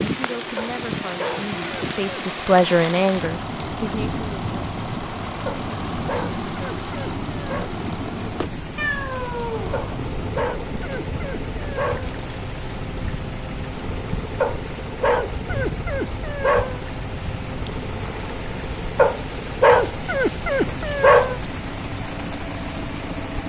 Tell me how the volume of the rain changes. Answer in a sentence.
The loudness of the rain stays about the same.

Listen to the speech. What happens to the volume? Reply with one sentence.
The loudness of the speech goes up, then down.